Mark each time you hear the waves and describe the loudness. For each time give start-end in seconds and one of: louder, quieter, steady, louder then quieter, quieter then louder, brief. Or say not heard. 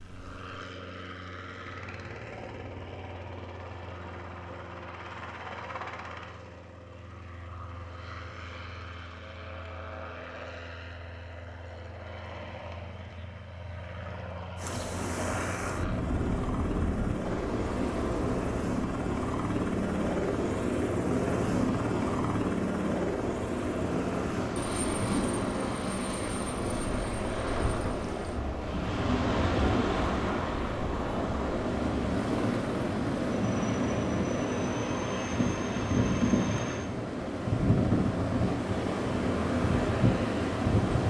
14.6-41.0 louder.